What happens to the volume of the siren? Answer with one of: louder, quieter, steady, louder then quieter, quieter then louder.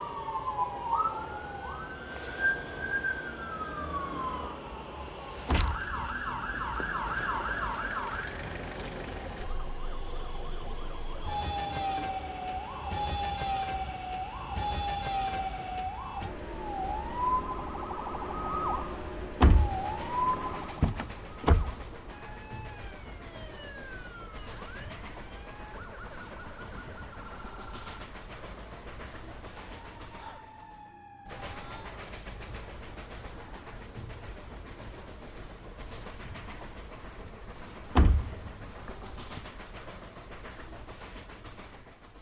quieter.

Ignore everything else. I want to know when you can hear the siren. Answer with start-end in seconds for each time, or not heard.
0.0-33.6.